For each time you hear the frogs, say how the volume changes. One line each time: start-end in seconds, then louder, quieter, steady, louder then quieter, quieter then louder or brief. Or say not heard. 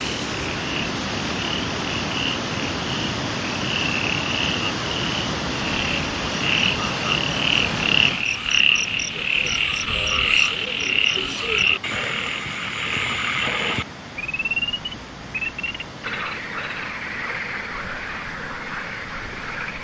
0.0-19.8 louder then quieter.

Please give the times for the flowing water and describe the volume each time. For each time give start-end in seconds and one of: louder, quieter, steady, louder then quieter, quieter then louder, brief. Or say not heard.
0.0-19.8 quieter.